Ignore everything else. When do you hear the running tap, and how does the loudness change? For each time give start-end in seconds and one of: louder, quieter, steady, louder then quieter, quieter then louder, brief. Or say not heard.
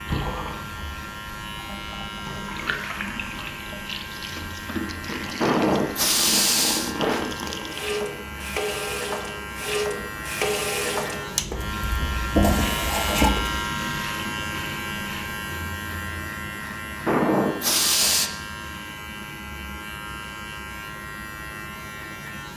0.0-13.7 louder.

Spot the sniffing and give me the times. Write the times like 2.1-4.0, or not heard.
5.4-7.2, 17.1-18.3.